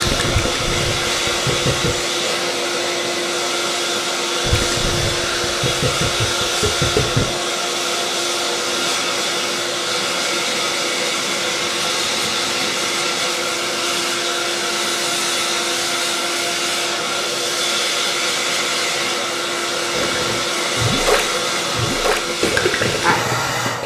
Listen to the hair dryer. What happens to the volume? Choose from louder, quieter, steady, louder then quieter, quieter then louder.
steady.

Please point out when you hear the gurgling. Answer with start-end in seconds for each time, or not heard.
0.0-1.9, 4.5-7.2, 19.9-23.8.